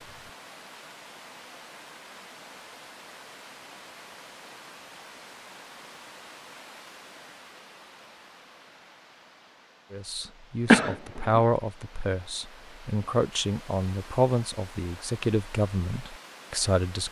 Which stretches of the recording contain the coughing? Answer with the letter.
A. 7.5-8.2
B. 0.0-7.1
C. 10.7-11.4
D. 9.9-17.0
C.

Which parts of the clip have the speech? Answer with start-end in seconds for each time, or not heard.
9.9-17.0.